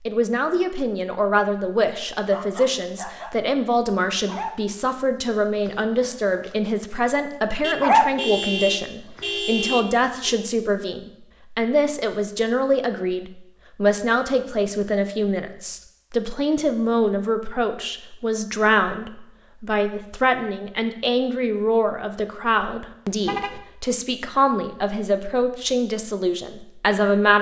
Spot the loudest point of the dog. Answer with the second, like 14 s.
8 s.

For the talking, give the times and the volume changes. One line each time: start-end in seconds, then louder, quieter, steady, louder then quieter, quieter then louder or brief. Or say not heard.
0.0-27.3 steady.